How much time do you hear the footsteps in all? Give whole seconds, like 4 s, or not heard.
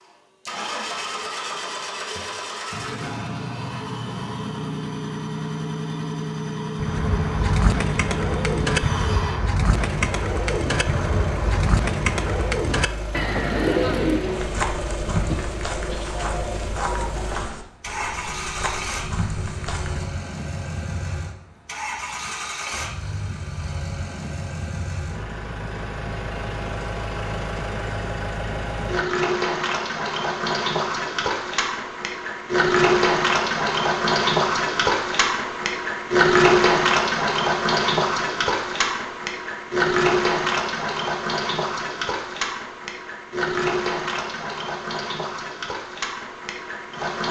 6 s.